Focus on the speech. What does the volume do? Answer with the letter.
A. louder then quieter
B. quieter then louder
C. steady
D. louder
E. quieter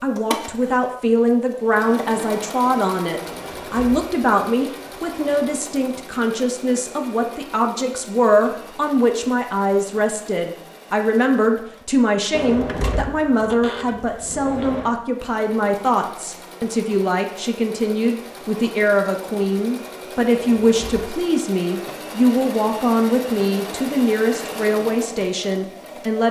C.